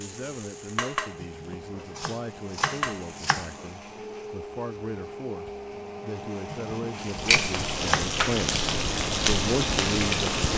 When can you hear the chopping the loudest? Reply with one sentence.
The loudest moment of the chopping is at 8 seconds.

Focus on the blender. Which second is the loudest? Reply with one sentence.
The volume of the blender peaks at 10 seconds.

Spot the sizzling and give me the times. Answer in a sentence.
The sizzling can be heard from 0.0 to 3.7 s and from 7.0 to 10.5 s.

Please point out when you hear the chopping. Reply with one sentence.
You can hear the chopping from 1.2 to 3.5 s and from 6.6 to 8.1 s.